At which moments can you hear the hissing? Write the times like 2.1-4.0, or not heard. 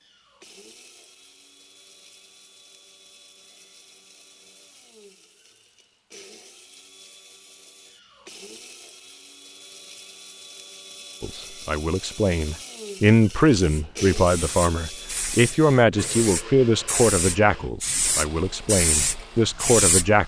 13.5-20.2.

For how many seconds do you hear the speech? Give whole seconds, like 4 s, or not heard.
9 s.